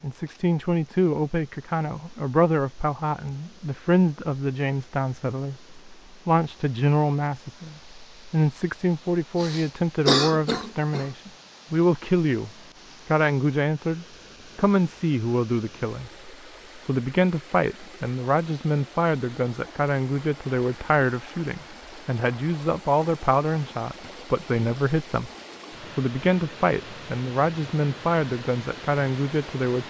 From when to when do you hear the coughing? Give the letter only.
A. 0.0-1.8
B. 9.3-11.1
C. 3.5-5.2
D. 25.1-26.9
B.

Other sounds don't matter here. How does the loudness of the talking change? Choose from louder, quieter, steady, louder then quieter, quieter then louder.
steady.